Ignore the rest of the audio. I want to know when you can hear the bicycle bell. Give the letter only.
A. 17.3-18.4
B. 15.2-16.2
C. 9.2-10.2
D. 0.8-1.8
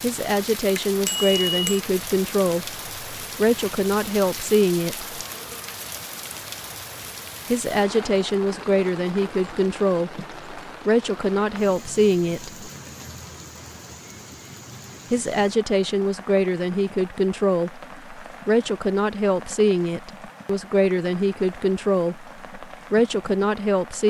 D.